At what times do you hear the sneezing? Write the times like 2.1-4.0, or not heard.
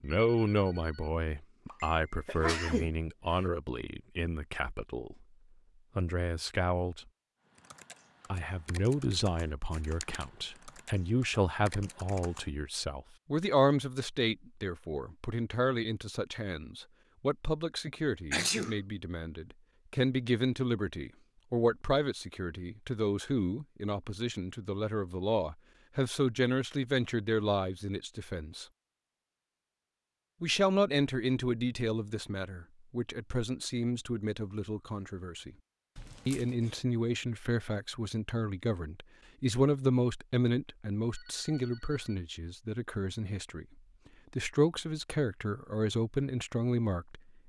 1.7-3.4, 17.9-18.8, 36.0-36.7.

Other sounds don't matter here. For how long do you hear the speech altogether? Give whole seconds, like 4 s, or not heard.
42 s.